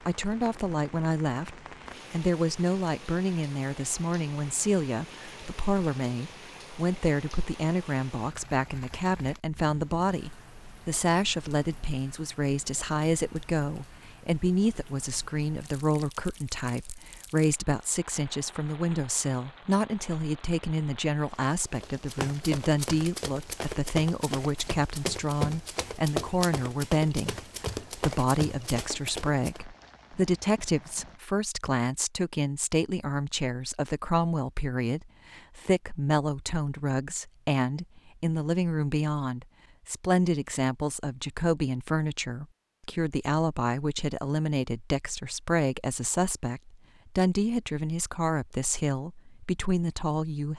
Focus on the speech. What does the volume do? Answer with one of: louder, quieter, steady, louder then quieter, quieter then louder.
steady.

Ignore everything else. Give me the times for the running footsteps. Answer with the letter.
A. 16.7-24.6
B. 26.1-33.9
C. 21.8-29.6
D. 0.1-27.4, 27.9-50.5
C.